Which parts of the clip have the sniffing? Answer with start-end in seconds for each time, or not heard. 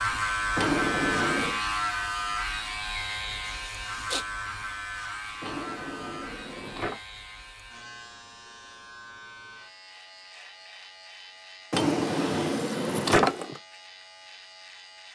3.5-4.2.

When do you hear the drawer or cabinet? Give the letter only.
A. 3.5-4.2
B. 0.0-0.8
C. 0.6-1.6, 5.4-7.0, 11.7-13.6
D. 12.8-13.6
C.